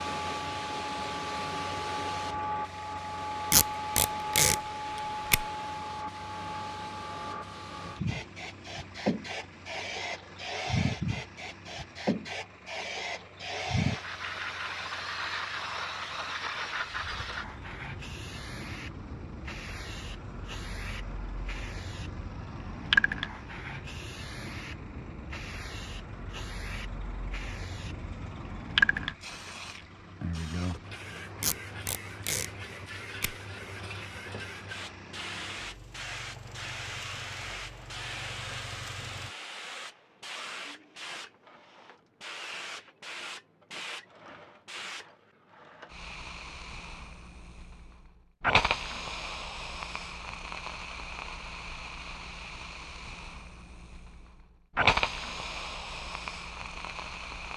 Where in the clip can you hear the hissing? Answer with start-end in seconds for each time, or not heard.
0.0-57.5.